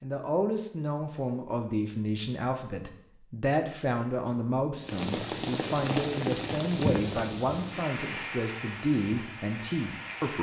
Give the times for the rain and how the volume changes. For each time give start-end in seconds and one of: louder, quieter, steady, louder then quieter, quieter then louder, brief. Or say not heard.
4.8-10.3 quieter.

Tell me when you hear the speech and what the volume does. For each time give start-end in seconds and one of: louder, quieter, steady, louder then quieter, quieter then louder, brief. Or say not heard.
0.0-10.3 steady.